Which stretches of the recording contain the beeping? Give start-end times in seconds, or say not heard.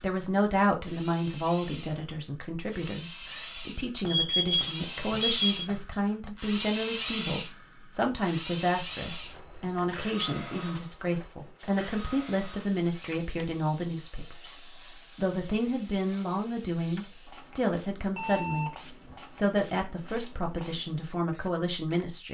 4.0-5.7, 8.8-9.9, 18.1-19.2.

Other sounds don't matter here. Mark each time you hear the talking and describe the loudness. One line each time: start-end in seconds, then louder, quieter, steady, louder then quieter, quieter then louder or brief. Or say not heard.
0.0-18.7 steady
19.3-22.2 brief.